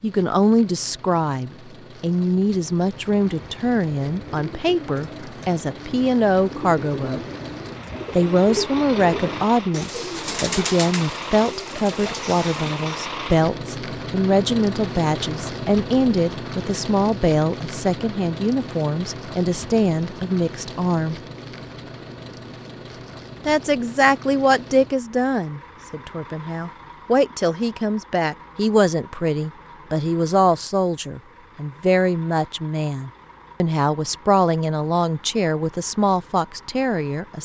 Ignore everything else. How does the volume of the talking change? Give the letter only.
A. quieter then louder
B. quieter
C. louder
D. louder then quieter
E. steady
E.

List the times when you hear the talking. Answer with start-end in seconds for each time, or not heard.
0.0-7.2, 8.1-21.1, 23.4-37.4.